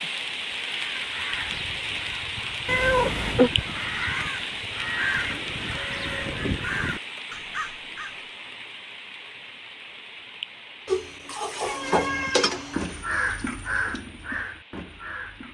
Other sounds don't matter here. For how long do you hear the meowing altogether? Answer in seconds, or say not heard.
3 s.